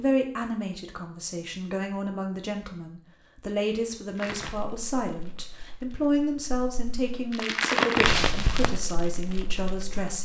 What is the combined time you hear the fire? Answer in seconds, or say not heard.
6 s.